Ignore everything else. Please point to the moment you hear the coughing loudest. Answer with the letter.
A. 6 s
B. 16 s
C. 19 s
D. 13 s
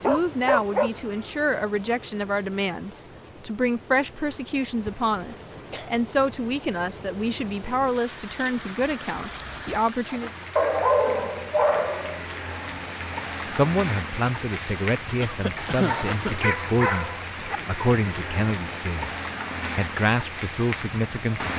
B.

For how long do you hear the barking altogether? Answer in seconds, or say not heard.
5 s.